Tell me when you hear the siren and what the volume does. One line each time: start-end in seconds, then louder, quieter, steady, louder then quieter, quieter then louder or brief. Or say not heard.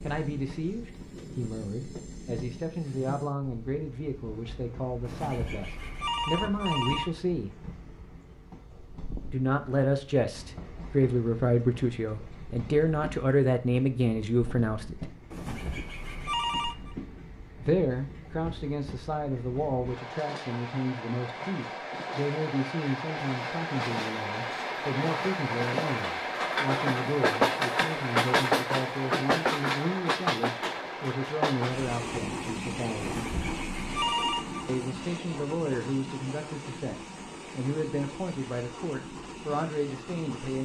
not heard.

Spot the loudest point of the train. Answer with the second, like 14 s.
28 s.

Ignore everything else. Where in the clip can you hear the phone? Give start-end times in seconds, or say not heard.
5.0-7.2, 15.3-16.9, 33.0-34.6.